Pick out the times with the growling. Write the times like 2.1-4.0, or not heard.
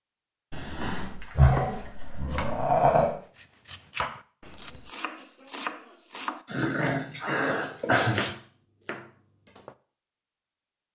0.5-3.1, 6.5-8.3.